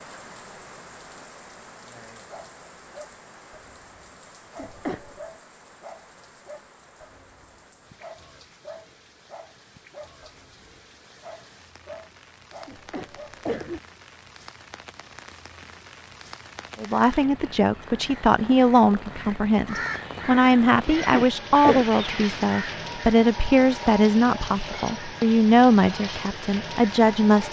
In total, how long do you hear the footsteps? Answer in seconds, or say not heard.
not heard.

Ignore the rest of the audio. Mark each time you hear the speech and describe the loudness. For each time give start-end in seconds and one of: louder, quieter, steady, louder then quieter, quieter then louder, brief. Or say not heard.
16.8-27.4 steady.